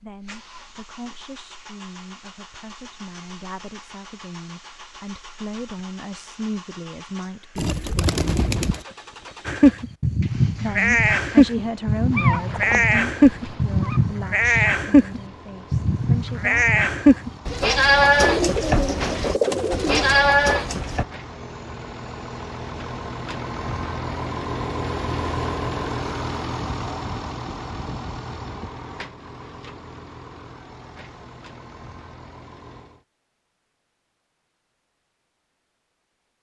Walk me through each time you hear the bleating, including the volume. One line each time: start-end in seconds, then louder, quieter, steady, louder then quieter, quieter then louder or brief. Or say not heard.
9.4-21.1 steady.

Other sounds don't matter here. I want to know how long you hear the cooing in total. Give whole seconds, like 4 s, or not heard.
3 s.